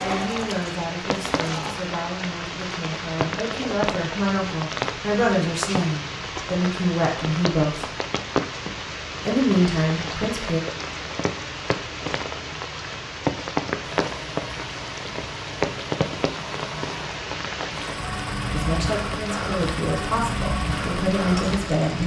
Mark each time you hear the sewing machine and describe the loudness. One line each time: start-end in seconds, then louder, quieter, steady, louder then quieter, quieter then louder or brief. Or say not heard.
0.0-1.8 brief
13.8-22.0 louder.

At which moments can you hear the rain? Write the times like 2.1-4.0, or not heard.
0.0-22.0.